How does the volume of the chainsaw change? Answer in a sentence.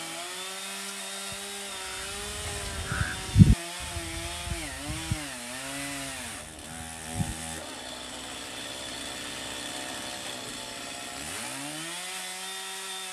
The volume of the chainsaw stays about the same.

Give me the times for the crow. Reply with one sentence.
The crow can be heard from 1.3 to 7.3 s.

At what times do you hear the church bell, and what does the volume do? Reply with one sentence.
You can't hear the church bell here.